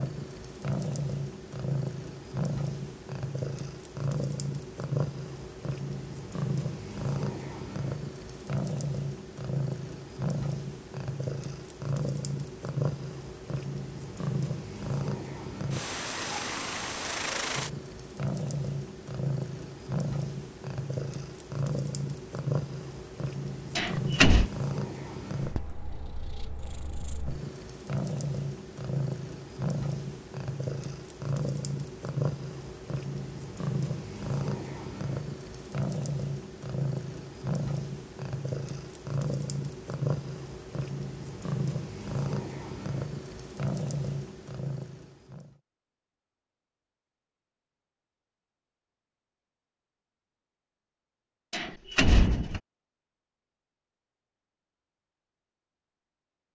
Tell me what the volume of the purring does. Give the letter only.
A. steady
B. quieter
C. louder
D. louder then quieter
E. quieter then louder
A.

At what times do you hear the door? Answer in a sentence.
You can hear the door from 23.8 to 24.5 s and from 51.5 to 52.6 s.